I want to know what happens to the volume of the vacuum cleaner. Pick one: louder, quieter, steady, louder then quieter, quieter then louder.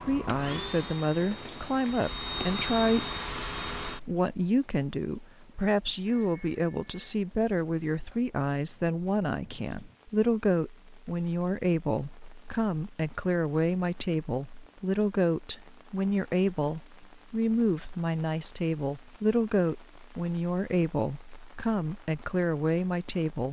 quieter then louder.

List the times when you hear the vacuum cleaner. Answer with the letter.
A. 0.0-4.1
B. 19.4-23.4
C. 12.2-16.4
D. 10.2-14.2
A.